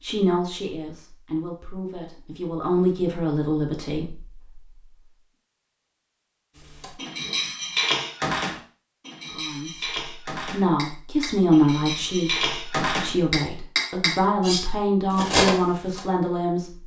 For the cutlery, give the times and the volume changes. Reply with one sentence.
The cutlery can be heard from 6.8 to 16.0 s, getting quieter then louder.